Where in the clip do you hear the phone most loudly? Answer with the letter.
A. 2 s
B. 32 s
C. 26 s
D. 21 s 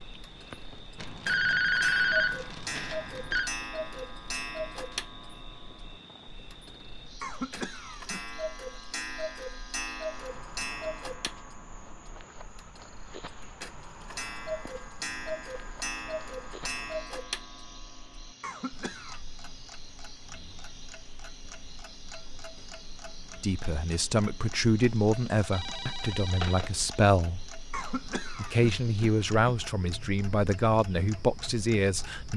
A.